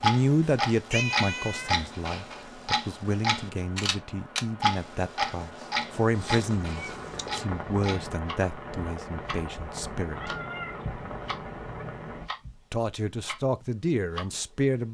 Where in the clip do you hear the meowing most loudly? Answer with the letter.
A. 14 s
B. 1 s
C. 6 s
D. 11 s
B.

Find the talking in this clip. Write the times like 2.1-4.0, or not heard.
0.0-10.3, 12.7-14.8.